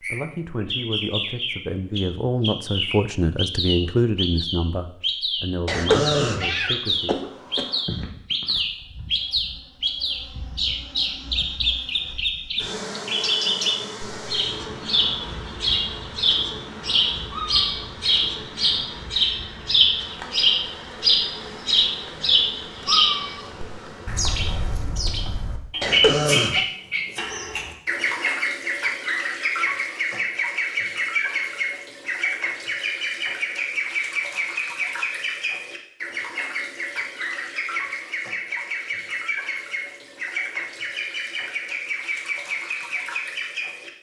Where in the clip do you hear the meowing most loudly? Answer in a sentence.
The loudest moment of the meowing is at 23 seconds.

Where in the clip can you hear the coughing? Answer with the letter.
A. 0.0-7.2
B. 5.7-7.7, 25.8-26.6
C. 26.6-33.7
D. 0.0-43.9
B.